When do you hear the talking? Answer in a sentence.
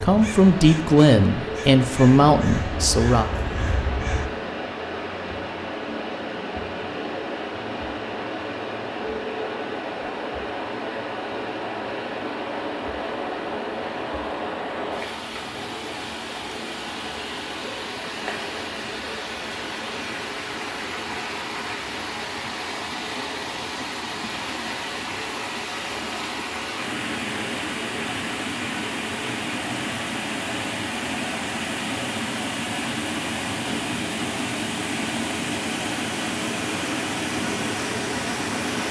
You can hear the talking from 0.0 to 3.3 s.